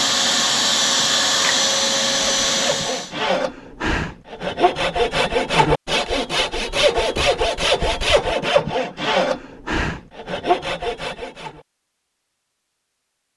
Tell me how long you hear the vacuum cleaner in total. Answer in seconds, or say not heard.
3 s.